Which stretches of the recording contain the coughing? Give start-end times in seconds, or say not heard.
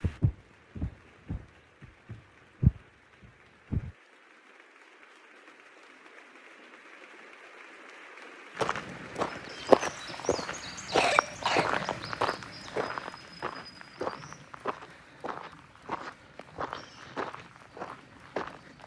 10.9-12.0.